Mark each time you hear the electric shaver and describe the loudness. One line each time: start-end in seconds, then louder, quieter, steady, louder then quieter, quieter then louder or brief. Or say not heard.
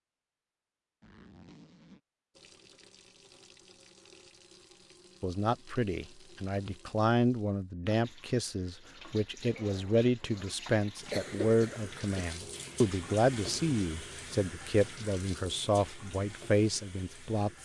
not heard.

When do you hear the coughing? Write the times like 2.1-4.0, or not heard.
11.1-12.2.